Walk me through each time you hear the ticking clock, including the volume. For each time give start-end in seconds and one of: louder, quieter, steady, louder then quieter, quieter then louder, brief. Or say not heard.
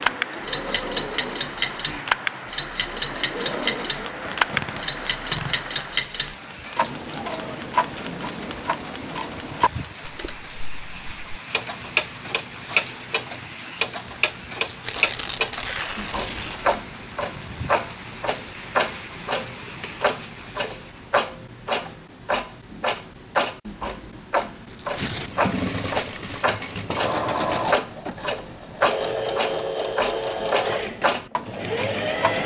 0.0-32.4 steady.